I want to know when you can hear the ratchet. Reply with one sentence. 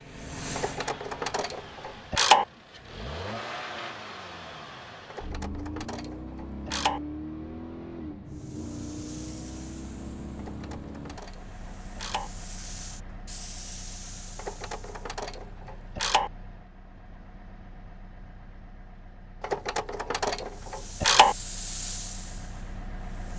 The ratchet can be heard from 0.6 to 2.5 s, from 5.1 to 7.0 s, from 10.3 to 12.3 s, from 14.3 to 16.3 s and from 19.4 to 21.4 s.